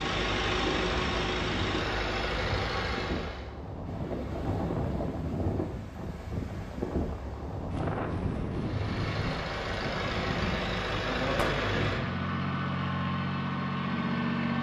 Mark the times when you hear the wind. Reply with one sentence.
You can hear the wind from 0.1 to 11.6 s.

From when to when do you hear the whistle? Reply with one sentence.
The whistle can't be heard in this clip.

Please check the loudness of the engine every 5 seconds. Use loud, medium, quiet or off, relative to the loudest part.
loud, medium, loud.